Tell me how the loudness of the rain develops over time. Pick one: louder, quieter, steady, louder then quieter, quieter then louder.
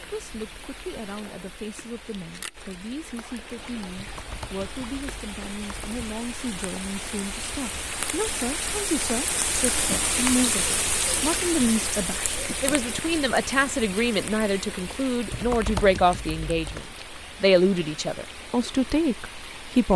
louder then quieter.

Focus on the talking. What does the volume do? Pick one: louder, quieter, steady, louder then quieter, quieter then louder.
louder.